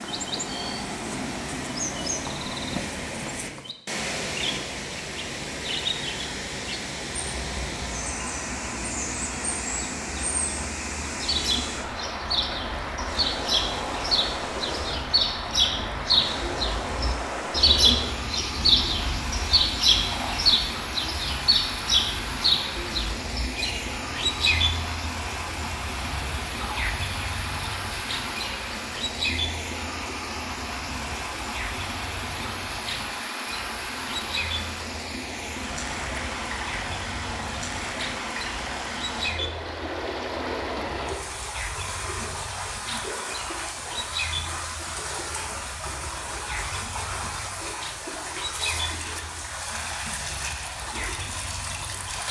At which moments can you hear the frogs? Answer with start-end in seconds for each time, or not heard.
not heard.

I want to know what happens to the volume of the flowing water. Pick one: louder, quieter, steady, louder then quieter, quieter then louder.
steady.